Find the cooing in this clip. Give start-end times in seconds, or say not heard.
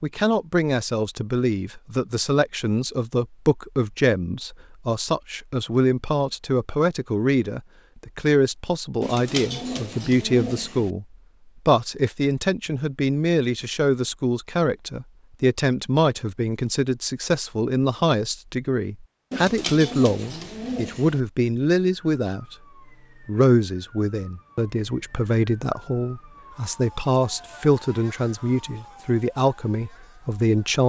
9.0-10.9, 19.3-21.2.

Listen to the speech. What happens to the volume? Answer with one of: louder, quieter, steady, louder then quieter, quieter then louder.
steady.